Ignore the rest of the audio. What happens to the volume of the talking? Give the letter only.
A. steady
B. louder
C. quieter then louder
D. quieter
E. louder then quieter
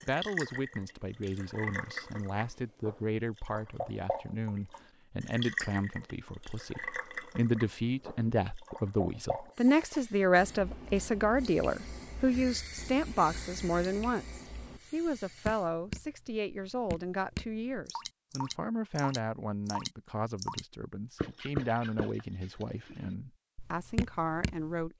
E.